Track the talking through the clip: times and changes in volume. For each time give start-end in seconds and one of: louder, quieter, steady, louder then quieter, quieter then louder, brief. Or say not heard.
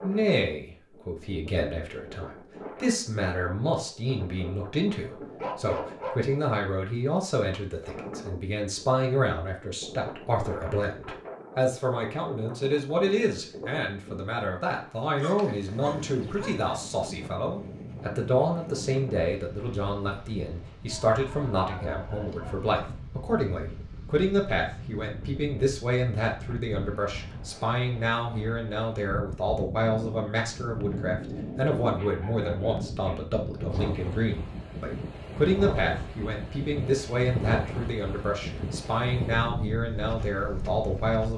0.0-41.3 steady.